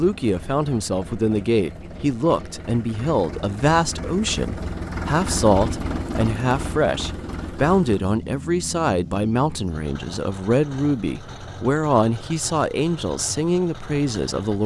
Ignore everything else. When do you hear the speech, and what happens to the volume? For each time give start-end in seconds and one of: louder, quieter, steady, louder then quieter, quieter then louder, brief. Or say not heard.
0.0-14.6 steady.